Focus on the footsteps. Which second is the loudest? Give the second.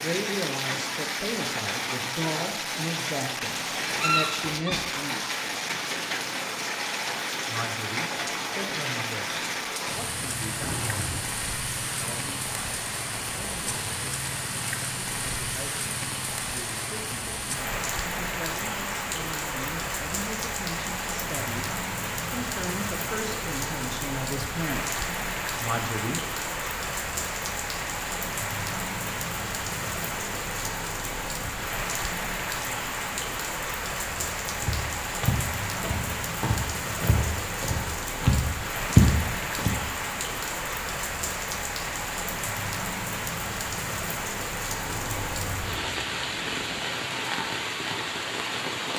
39 s.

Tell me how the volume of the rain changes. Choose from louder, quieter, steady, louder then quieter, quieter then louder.
steady.